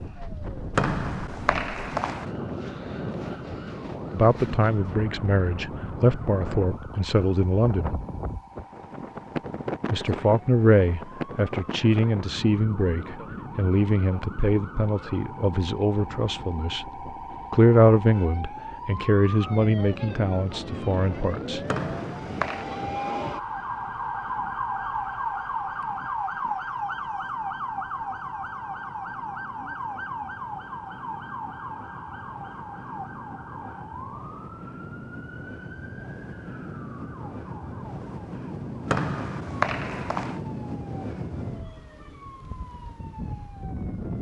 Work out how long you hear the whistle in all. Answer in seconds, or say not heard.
4 s.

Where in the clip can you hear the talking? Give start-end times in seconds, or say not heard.
4.1-8.0, 9.9-16.9, 17.5-21.6.